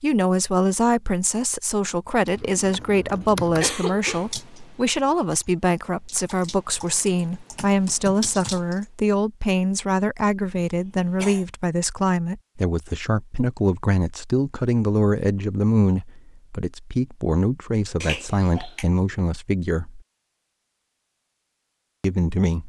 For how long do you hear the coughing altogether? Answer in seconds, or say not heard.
3 s.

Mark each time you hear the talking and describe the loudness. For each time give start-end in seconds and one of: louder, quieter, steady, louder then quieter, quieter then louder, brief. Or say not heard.
0.0-20.0 steady
22.0-22.6 brief.